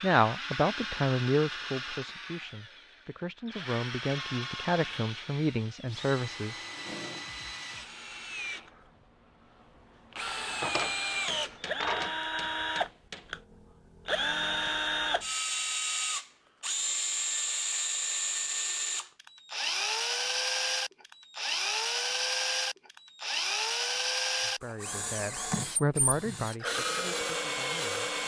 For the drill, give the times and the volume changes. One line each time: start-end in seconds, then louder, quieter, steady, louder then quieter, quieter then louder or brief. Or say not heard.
0.0-28.2 louder.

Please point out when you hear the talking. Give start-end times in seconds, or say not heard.
0.0-6.6, 24.4-28.1.